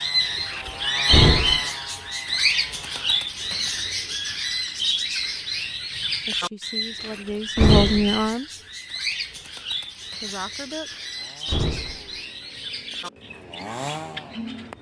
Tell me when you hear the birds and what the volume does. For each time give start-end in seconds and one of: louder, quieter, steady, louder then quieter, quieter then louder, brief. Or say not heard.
0.0-14.7 quieter.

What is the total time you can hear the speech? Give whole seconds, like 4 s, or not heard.
3 s.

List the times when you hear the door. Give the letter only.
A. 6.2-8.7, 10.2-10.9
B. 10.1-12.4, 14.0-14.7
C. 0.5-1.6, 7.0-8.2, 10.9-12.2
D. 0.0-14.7
C.